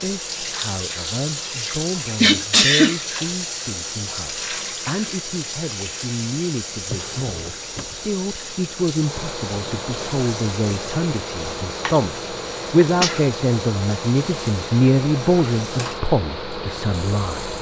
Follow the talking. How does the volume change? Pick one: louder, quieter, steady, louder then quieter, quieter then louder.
louder.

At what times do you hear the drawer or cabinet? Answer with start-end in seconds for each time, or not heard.
6.8-8.1.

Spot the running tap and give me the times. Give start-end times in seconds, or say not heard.
0.0-17.5.